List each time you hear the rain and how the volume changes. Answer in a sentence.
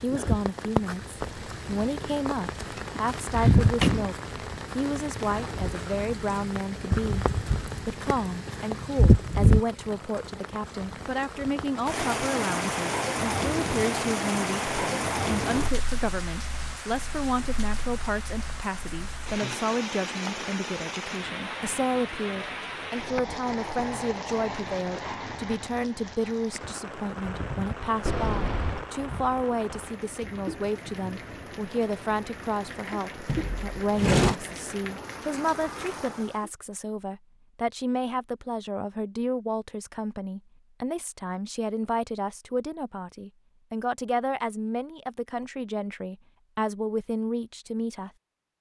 You can hear the rain from 0.0 to 36.5 s, getting quieter.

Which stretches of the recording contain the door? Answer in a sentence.
The door can be heard from 3.0 to 4.2 s, from 28.1 to 28.9 s and from 33.2 to 34.4 s.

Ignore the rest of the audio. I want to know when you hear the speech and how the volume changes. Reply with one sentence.
You can hear the speech from 0.0 to 48.5 s, at a steady volume.